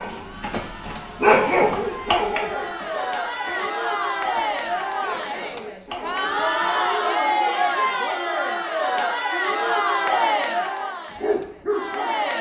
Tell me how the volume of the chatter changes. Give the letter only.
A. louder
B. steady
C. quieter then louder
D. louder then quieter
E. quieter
A.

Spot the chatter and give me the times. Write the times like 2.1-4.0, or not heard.
0.1-12.3.